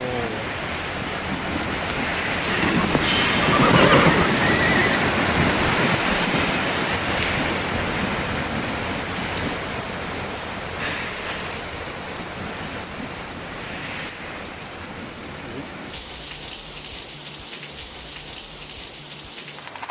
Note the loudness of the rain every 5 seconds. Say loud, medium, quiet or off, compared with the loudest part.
loud, loud, medium, quiet.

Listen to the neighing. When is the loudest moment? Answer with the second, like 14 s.
4 s.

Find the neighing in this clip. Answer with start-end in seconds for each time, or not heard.
2.5-5.0.